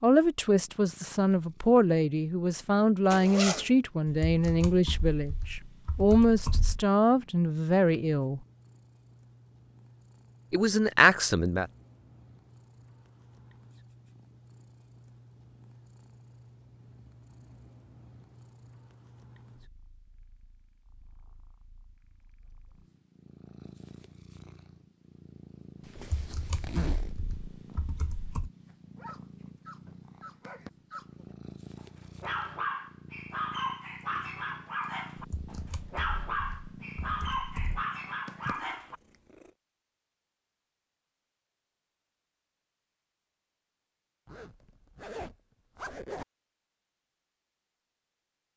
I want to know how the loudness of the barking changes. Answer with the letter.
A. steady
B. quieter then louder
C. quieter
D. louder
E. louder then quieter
D.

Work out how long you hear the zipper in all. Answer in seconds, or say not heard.
4 s.